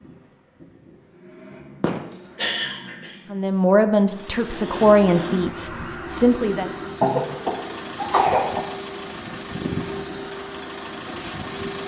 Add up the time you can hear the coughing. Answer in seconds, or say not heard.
3 s.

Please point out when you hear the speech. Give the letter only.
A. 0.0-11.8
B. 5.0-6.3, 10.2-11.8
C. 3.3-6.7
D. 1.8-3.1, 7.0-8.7
C.